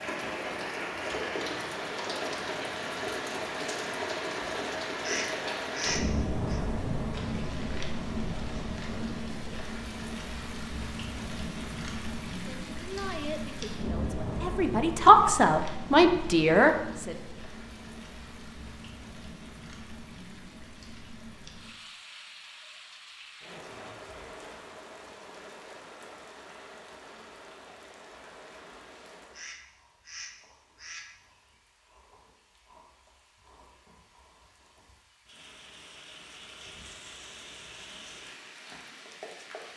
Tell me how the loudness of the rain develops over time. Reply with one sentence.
The loudness of the rain goes down.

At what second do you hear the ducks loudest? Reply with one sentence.
The volume of the ducks peaks at 6 seconds.